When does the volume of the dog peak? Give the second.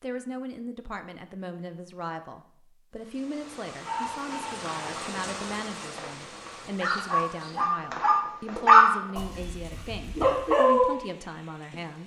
9 s.